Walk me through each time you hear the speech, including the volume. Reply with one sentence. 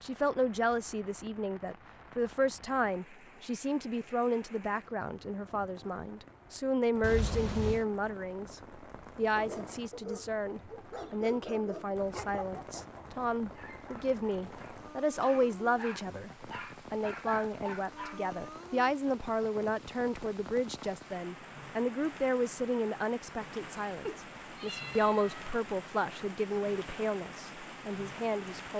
The speech can be heard from 0.0 to 28.7 s, at a steady volume.